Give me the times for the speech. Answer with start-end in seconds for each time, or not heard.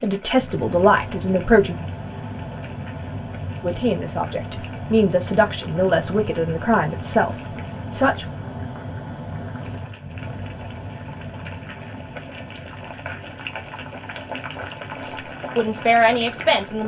0.0-1.8, 3.6-8.2, 15.0-16.8.